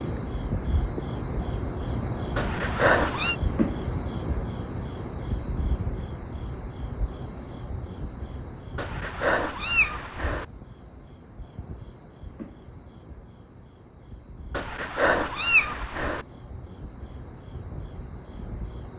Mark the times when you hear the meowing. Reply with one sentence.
You can hear the meowing from 2.4 to 3.4 s, from 8.8 to 10.4 s and from 14.5 to 16.2 s.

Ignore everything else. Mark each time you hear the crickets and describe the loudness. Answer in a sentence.
The crickets can be heard from 0.0 to 18.9 s, getting quieter.